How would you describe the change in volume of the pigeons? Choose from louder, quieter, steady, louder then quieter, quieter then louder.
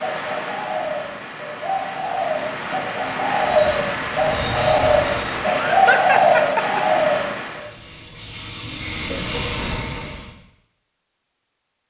louder.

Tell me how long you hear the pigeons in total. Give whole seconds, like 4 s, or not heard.
8 s.